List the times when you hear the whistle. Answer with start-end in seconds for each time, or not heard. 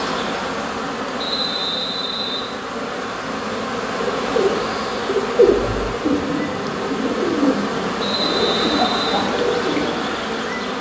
1.1-2.5, 8.0-9.2.